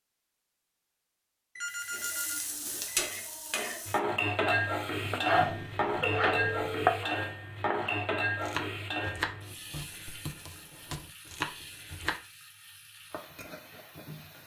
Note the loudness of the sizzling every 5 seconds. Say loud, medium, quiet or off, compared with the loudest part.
loud, loud, quiet.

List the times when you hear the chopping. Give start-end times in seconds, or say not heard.
4.5-12.2.